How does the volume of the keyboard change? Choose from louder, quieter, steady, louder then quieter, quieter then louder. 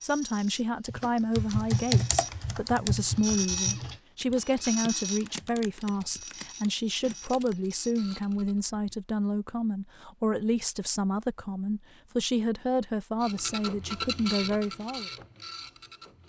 quieter.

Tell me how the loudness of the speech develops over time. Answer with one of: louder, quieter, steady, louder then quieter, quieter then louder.
steady.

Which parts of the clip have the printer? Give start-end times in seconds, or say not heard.
0.0-8.6, 13.2-16.2.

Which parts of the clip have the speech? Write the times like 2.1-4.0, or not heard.
0.0-15.1.